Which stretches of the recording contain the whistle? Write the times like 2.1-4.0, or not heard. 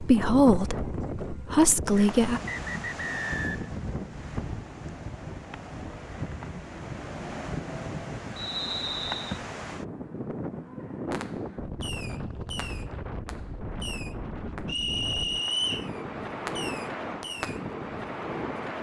1.9-3.7, 8.3-9.4, 14.7-15.9.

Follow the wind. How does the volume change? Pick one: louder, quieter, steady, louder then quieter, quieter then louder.
steady.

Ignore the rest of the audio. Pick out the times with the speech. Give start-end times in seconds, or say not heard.
0.0-2.4.